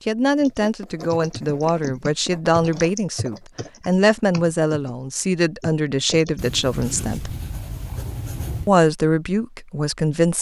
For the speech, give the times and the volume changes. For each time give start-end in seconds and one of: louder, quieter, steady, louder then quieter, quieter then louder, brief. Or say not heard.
0.1-7.3 steady
8.7-10.3 brief.